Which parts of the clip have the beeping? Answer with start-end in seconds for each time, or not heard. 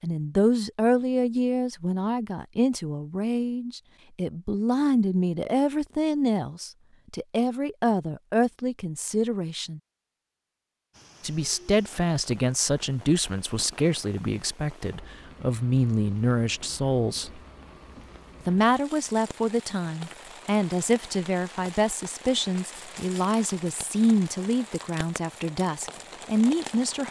not heard.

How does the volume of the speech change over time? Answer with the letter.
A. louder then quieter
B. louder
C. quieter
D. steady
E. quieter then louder
D.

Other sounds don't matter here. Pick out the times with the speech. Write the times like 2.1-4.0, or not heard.
0.0-9.8, 11.2-17.3, 18.4-27.0.